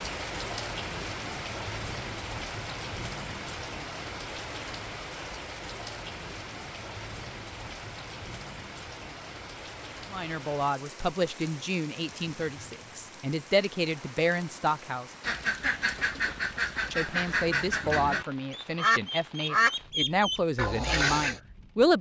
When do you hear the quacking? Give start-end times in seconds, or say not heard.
15.2-21.4.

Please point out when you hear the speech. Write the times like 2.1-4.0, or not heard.
10.1-15.1, 16.9-21.9.